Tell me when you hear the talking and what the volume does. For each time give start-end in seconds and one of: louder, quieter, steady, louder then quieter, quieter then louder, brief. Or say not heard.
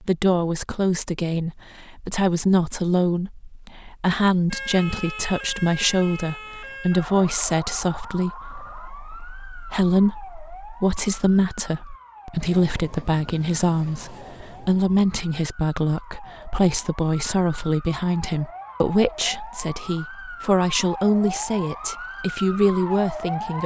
0.1-23.6 steady.